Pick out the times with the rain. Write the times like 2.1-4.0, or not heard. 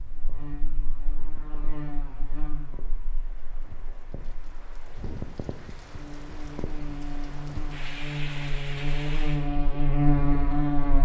0.0-9.5.